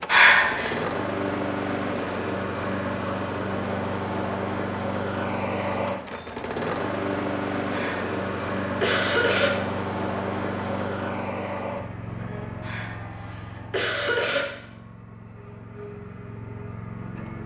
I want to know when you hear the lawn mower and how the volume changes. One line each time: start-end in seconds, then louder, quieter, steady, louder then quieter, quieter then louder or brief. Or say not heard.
0.0-17.4 quieter.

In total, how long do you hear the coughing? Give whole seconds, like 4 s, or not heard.
4 s.